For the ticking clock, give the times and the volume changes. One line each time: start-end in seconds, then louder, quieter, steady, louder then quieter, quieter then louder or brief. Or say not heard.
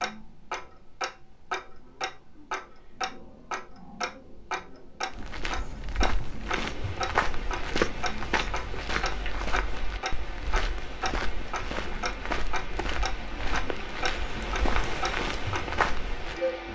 0.0-16.7 steady.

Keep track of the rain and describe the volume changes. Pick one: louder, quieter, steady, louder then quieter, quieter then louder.
louder.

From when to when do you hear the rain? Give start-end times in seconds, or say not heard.
6.6-16.7.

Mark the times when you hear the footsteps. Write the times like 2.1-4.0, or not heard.
5.1-16.4.